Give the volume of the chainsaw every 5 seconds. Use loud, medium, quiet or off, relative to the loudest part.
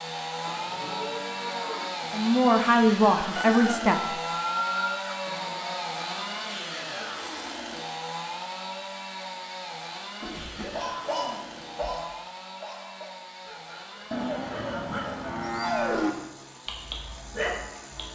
loud, loud, medium, quiet.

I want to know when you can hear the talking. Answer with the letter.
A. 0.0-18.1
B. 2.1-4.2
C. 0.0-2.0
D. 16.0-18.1
B.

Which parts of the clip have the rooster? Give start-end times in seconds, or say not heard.
3.4-5.3.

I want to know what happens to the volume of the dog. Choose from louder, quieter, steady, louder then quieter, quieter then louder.
quieter then louder.